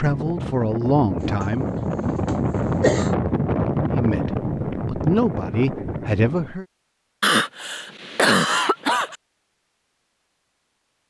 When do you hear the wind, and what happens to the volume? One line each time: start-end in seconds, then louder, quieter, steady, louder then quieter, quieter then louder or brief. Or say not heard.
0.0-6.5 louder then quieter.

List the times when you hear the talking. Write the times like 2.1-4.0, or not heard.
0.0-1.7, 3.9-6.7.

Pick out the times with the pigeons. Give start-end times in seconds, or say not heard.
not heard.